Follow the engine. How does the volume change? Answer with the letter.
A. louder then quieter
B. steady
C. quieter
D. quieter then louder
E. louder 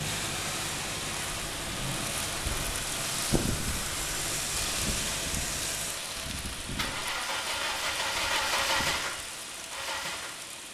E.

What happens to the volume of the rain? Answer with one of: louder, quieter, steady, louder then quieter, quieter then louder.
quieter.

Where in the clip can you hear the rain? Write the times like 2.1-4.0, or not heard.
0.0-10.6.